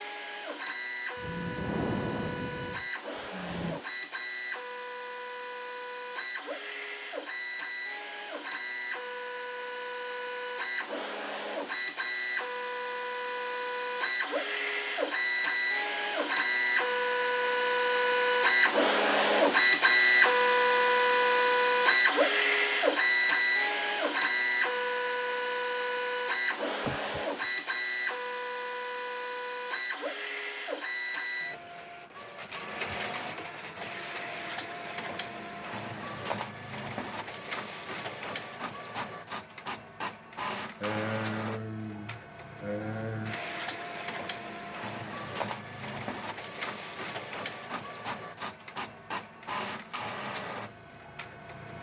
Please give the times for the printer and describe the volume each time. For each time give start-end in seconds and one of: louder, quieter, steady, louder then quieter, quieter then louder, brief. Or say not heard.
0.0-51.7 louder then quieter.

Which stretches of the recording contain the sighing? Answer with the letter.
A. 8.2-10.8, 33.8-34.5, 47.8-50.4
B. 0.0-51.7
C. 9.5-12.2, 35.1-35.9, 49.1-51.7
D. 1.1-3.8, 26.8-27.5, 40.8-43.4
D.